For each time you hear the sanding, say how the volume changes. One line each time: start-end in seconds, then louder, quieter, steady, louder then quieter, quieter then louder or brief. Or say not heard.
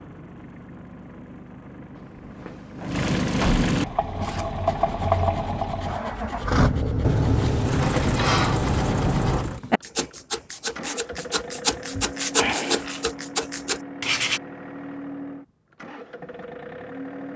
4.0-14.4 louder.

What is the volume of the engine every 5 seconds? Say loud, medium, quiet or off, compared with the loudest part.
loud, loud, medium, medium.